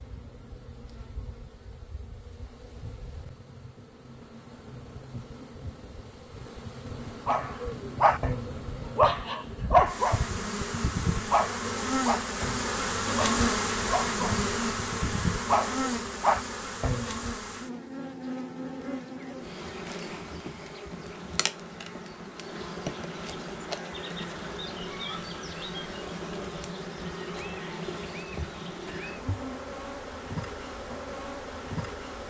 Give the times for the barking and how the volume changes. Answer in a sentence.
You can hear the barking from 7.2 to 17.3 s, getting quieter then louder.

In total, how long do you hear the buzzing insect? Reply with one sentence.
The buzzing insect can be heard for 32 seconds in total.